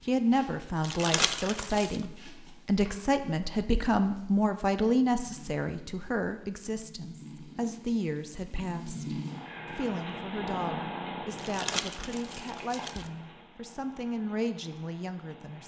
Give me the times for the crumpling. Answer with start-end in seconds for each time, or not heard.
0.8-2.0, 11.3-13.1.